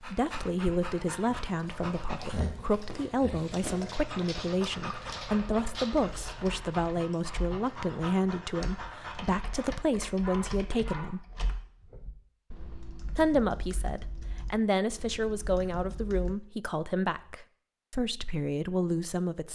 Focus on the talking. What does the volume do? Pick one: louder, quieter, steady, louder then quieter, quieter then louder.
steady.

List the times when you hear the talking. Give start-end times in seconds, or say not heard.
0.0-11.2, 13.1-19.5.